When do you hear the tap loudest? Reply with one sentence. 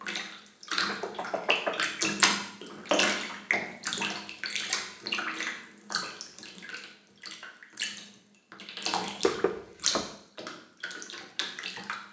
The loudest moment of the tap is at 3 seconds.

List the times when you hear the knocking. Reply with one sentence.
The knocking can be heard from 0.8 to 1.8 s and from 9.2 to 10.1 s.